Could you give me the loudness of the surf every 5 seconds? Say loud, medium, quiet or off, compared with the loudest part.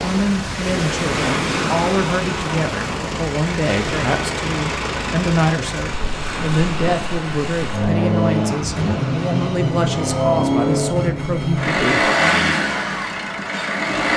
loud, medium, off.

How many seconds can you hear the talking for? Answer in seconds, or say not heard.
12 s.